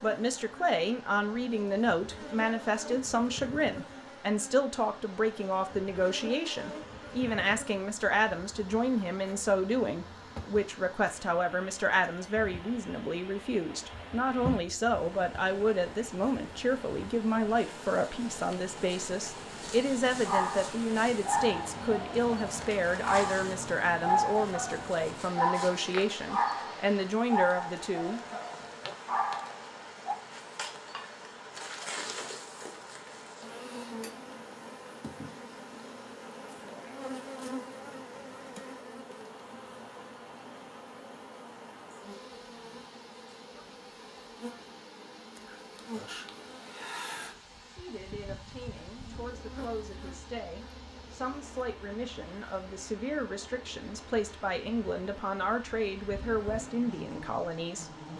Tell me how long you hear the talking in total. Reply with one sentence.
You can hear the talking for 39 seconds altogether.